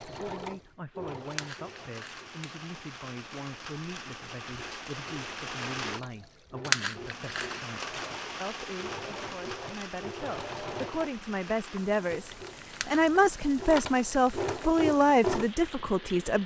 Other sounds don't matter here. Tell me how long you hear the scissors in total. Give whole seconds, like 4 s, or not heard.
3 s.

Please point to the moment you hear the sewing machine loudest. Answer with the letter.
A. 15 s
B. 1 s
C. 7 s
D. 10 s
A.